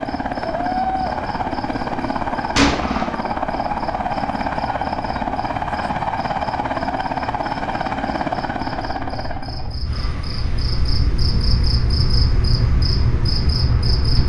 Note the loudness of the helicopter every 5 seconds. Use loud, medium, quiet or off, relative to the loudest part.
loud, loud, quiet.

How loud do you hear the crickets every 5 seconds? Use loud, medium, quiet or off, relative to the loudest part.
quiet, quiet, loud.